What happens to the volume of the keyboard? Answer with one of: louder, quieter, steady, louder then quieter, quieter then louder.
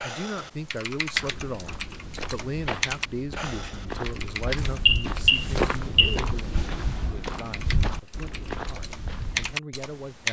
quieter then louder.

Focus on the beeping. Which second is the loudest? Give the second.
5 s.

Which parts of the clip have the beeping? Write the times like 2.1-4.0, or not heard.
4.5-6.2.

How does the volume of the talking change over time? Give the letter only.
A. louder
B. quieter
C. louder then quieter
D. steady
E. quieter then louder
B.